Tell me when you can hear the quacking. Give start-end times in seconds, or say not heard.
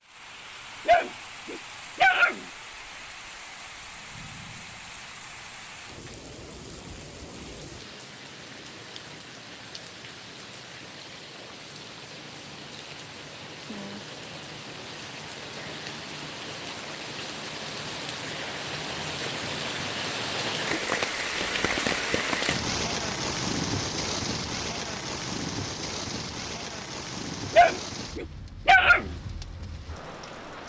not heard.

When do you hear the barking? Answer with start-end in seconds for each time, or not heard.
0.8-2.5, 27.5-29.1.